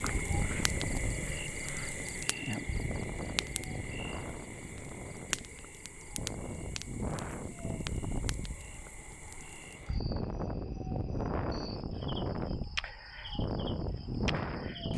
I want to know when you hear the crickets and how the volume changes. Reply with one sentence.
The crickets can be heard from 0.0 to 14.9 s, getting quieter then louder.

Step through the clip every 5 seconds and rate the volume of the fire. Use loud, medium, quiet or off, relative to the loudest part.
loud, loud, off.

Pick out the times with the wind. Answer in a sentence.
You can hear the wind from 0.0 to 14.9 s.